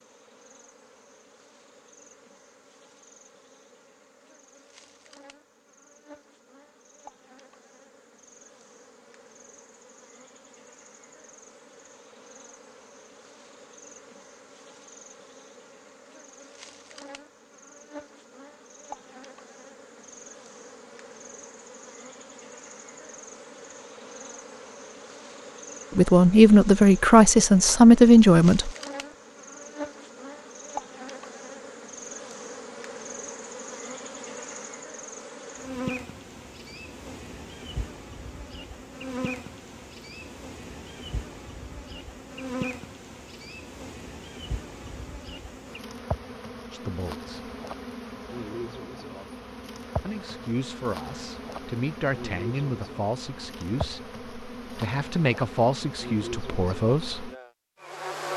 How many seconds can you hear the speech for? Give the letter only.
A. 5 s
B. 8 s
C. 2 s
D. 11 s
D.